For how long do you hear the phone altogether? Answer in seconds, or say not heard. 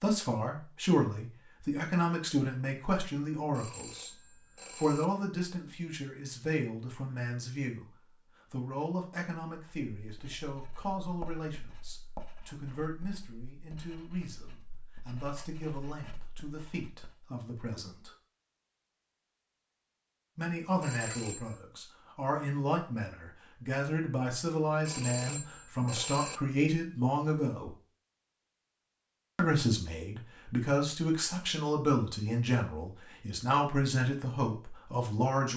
4 s.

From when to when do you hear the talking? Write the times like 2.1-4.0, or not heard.
0.0-4.2, 4.8-18.1, 20.4-27.8, 29.4-35.5.